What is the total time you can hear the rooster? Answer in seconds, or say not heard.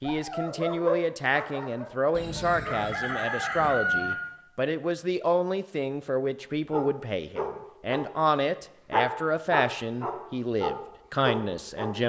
2 s.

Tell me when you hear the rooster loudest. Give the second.
4 s.